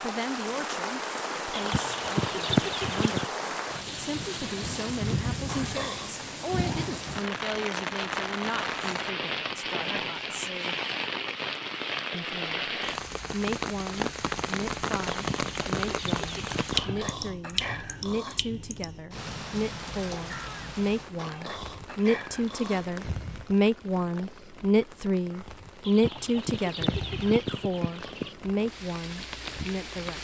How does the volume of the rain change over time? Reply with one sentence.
The volume of the rain goes down.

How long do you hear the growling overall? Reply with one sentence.
The growling can be heard for 4 seconds in total.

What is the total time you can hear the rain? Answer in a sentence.
You can hear the rain for 30 seconds altogether.